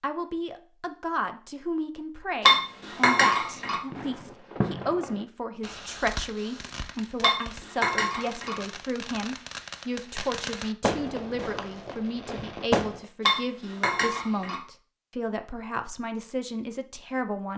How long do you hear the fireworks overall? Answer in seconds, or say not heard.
9 s.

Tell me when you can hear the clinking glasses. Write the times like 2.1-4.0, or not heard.
2.5-3.8, 7.2-8.6, 13.2-14.6.